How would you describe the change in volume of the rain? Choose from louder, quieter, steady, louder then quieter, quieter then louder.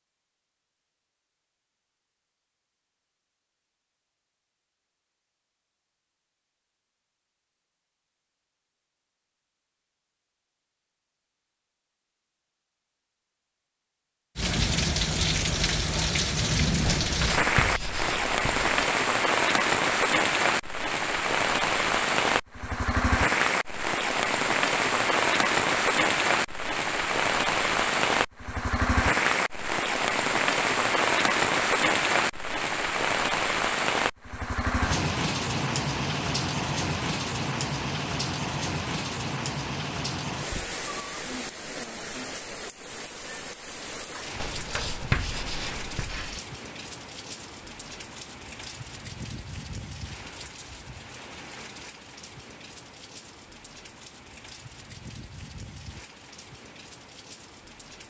quieter.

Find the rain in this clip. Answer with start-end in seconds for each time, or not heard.
14.3-58.0.